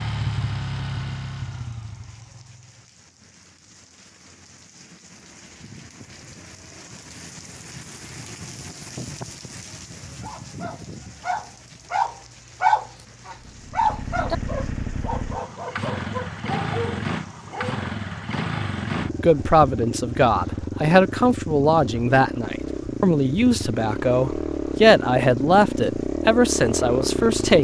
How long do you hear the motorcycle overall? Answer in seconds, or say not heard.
17 s.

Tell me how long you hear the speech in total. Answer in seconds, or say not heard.
8 s.